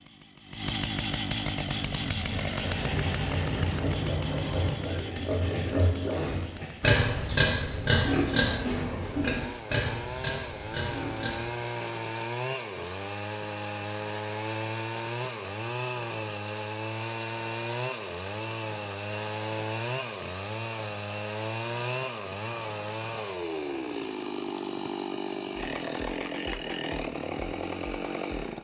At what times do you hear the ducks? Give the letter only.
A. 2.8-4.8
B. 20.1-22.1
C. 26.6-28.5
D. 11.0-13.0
A.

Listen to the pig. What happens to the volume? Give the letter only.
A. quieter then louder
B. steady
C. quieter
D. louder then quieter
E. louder
D.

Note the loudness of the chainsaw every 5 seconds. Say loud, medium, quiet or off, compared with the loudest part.
loud, medium, loud, loud, loud, loud.